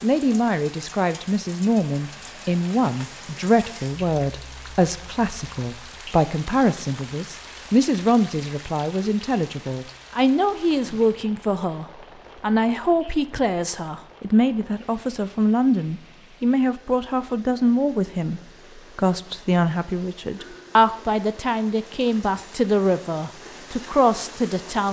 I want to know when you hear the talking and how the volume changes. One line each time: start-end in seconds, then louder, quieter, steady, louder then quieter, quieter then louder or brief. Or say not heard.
0.0-24.8 steady.